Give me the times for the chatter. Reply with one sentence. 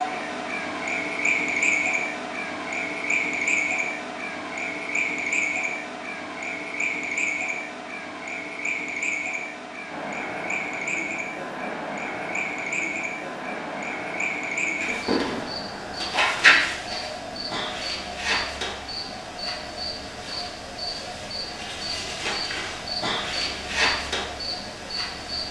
The chatter can be heard from 9.9 to 25.4 s.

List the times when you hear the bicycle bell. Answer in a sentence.
The bicycle bell can't be heard in this clip.